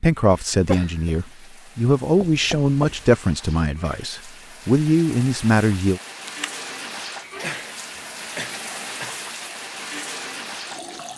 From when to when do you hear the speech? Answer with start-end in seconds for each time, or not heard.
0.0-6.0.